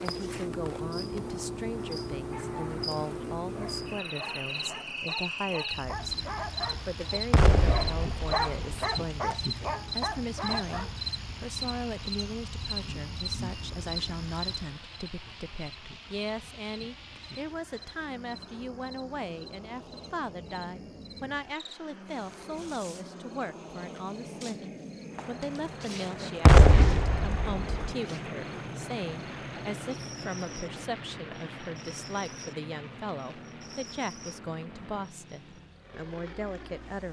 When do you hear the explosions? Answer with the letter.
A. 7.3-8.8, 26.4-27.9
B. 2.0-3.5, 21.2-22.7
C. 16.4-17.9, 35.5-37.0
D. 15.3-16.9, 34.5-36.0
A.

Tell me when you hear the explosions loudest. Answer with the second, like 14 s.
27 s.